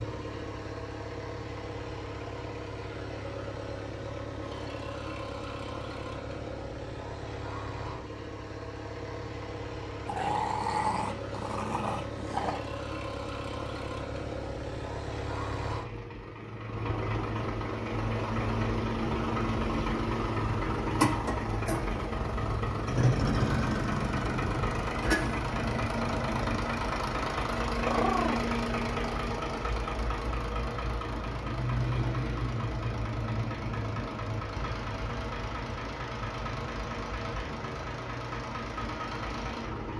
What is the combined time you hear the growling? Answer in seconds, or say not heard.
3 s.